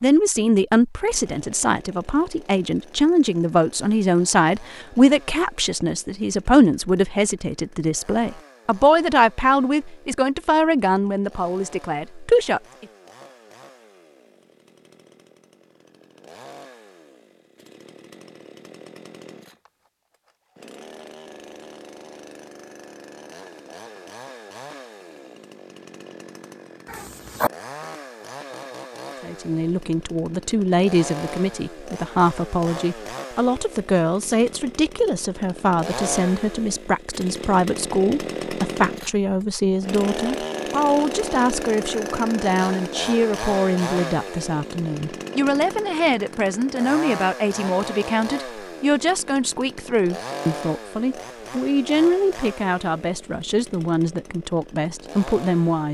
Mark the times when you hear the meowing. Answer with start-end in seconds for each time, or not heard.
26.9-27.5.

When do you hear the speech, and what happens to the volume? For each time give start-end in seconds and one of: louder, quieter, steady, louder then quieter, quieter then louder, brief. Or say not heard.
0.0-12.8 steady
29.2-55.8 steady.